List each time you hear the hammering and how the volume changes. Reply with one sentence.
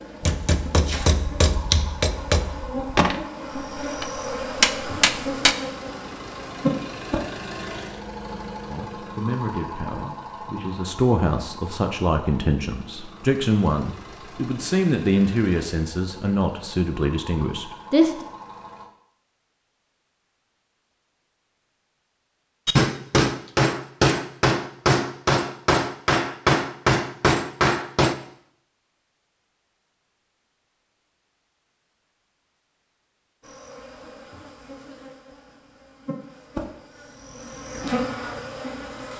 The hammering can be heard from 0.2 to 5.5 s, getting quieter then louder; and from 22.6 to 28.1 s, at a steady volume.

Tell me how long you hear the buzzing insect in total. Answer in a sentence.
The buzzing insect can be heard for 13 seconds in total.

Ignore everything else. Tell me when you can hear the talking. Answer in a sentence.
The talking can be heard from 8.7 to 18.2 s.